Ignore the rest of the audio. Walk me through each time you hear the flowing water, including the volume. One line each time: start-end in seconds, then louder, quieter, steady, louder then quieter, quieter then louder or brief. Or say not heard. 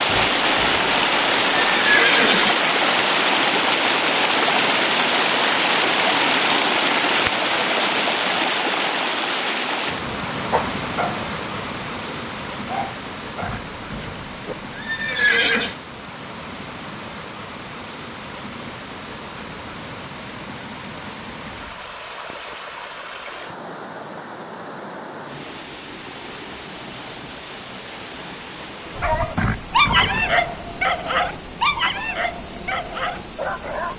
0.0-33.9 quieter.